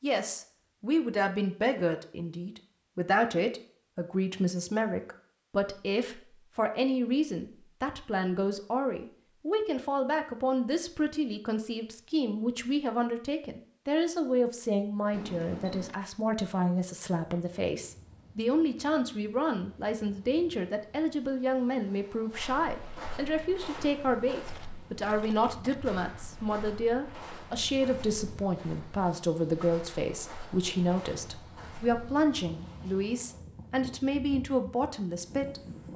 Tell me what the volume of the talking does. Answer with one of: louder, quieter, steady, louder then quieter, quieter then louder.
steady.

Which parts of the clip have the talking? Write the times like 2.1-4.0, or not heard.
0.0-35.6.